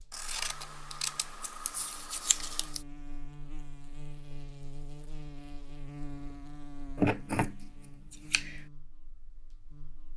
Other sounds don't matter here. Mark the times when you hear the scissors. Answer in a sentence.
You can hear the scissors from 0.1 to 2.8 s and from 7.0 to 8.7 s.